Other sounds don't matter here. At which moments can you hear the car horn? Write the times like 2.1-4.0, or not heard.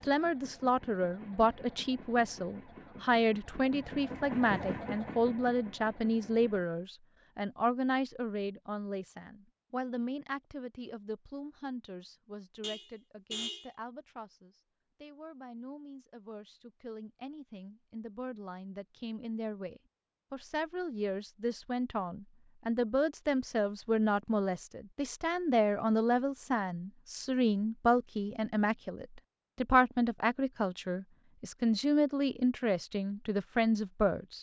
12.6-13.7.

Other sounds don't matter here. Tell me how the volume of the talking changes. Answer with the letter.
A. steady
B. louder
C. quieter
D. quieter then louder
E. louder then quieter
D.